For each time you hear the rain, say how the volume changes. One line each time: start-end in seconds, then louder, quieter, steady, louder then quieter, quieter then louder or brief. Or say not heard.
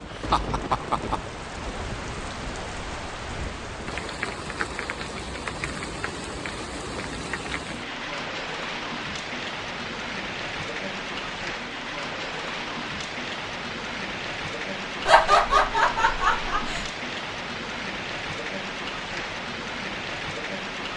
0.0-20.9 steady.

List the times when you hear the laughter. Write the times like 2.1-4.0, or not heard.
0.1-1.2, 15.1-16.9.